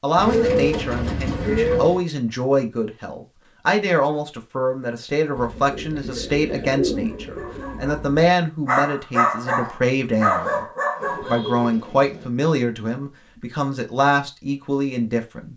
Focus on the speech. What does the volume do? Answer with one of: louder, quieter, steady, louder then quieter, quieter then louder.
steady.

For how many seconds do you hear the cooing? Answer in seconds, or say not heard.
6 s.